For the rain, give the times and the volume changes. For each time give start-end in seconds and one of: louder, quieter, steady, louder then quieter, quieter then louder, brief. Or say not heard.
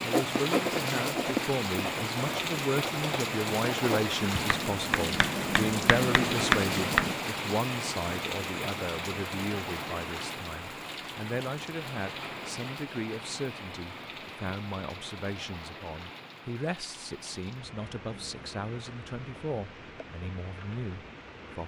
0.0-21.6 quieter.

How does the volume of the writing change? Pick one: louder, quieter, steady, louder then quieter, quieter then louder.
quieter then louder.